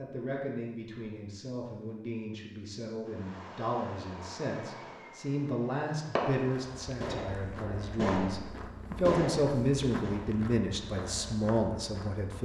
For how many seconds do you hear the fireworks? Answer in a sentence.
The fireworks can be heard for 7 seconds in total.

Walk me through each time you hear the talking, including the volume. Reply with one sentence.
You can hear the talking from 0.0 to 12.4 s, getting louder.